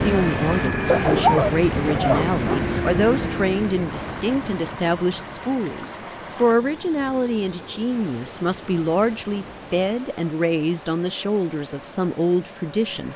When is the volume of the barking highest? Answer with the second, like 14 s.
1 s.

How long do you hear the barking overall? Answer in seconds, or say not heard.
2 s.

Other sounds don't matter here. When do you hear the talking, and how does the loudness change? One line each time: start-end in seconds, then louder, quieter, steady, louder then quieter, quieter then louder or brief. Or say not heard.
0.0-13.1 steady.